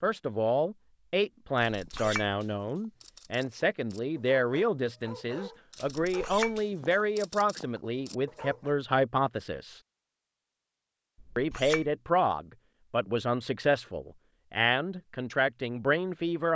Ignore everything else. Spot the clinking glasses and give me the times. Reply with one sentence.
You can hear the clinking glasses from 1.8 to 2.4 s, from 6.0 to 6.6 s and from 11.2 to 11.9 s.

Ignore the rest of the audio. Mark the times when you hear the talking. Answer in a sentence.
You can hear the talking from 0.0 to 9.8 s and from 11.3 to 16.5 s.